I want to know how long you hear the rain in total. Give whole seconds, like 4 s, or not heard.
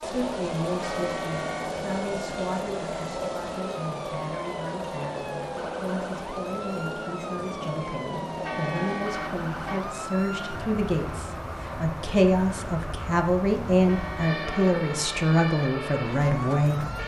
17 s.